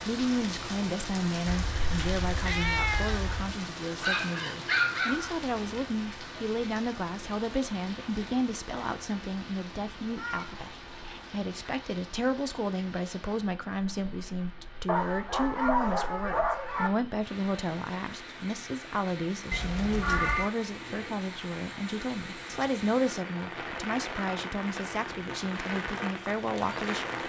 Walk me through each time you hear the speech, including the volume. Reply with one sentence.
You can hear the speech from 0.0 to 27.2 s, at a steady volume.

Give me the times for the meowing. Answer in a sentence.
You can hear the meowing from 1.4 to 3.5 s, from 10.2 to 11.3 s and from 19.5 to 20.5 s.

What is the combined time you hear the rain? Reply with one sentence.
You can hear the rain for 27 seconds altogether.